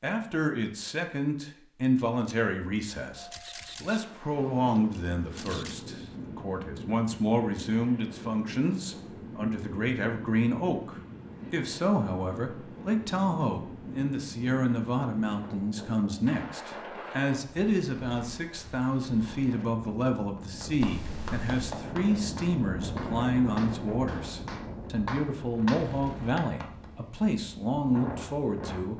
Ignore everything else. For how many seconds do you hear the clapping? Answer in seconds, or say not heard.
6 s.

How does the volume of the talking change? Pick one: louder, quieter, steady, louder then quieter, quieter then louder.
steady.